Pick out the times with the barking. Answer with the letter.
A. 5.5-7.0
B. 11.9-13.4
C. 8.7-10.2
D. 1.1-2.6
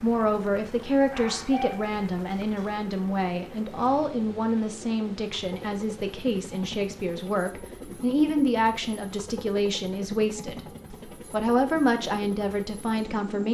D.